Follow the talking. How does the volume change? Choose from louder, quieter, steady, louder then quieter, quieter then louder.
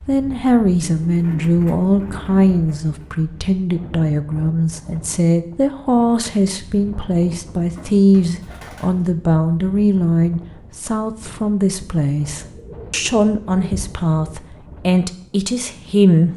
steady.